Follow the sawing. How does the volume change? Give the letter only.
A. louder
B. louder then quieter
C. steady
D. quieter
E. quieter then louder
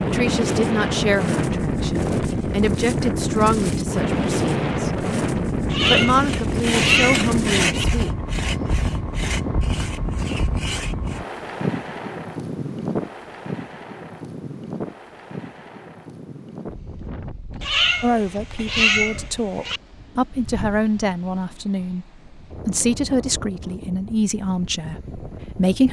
D.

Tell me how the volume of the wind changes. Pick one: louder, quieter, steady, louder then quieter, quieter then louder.
quieter.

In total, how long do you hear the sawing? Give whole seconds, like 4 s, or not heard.
5 s.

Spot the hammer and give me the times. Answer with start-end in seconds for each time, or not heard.
not heard.